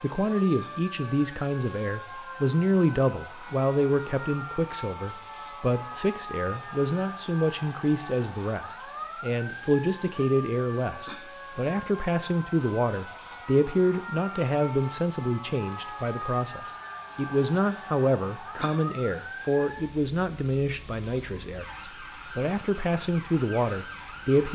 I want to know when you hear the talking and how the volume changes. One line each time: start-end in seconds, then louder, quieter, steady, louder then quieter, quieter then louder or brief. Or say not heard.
0.0-24.5 steady.